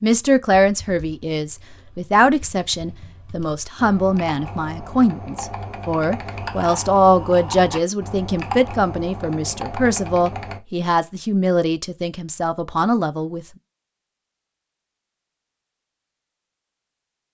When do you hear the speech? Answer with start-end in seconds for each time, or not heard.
0.0-13.4.